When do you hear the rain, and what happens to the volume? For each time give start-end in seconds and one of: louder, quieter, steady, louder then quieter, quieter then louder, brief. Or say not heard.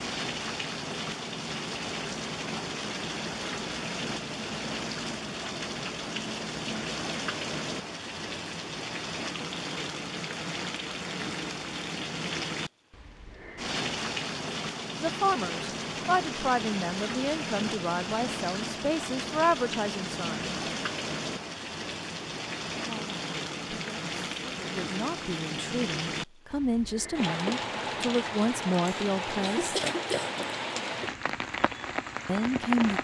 0.0-32.9 steady.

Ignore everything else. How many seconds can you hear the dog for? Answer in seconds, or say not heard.
not heard.